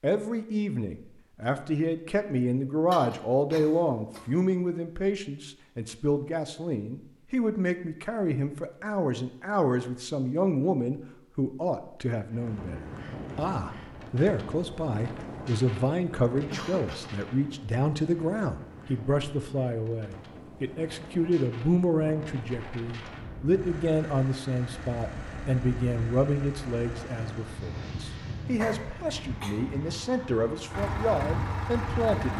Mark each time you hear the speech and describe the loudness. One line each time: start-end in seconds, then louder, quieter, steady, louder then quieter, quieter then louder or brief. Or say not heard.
0.0-32.3 steady.